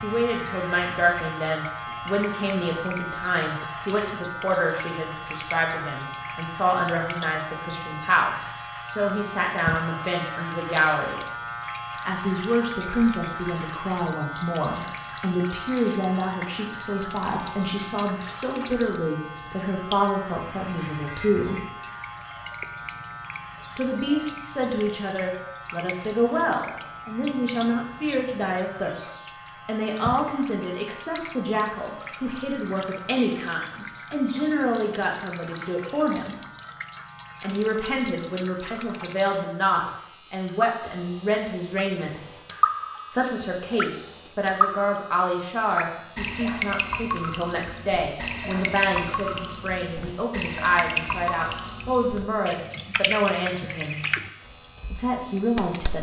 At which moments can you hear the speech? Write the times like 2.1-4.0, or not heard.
0.0-11.2, 11.9-21.6, 23.8-36.4, 37.4-42.2, 43.1-54.0, 55.0-55.9.